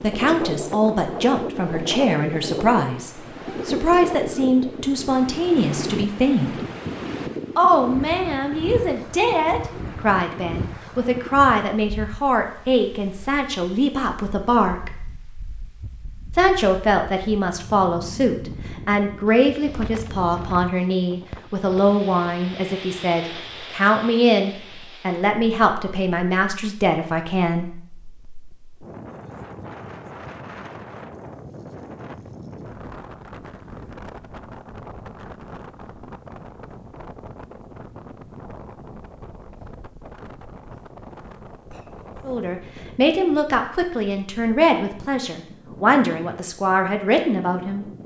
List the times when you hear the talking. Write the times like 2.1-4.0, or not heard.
0.0-6.6, 7.5-14.9, 16.4-27.7, 42.2-47.9.